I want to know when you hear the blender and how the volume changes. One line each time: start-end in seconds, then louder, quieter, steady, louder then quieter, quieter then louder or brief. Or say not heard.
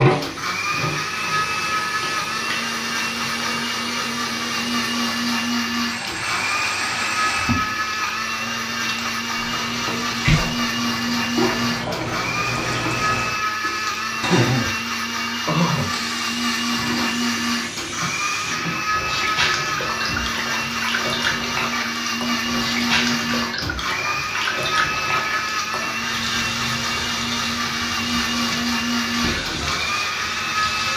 0.0-30.9 steady.